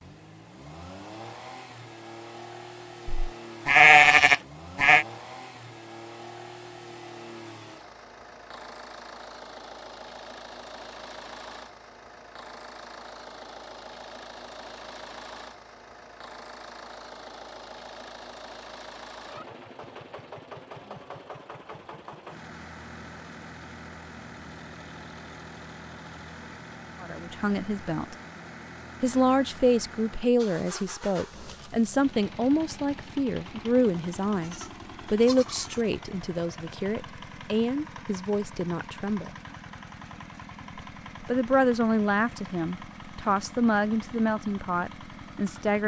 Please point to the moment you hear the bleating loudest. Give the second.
4 s.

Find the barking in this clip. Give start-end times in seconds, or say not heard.
not heard.